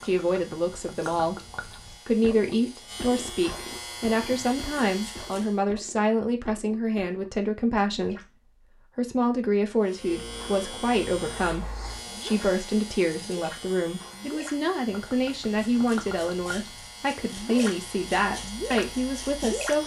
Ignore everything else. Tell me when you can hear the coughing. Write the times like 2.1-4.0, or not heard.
not heard.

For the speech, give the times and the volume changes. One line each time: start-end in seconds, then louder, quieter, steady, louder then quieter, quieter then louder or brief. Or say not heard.
0.0-19.8 steady.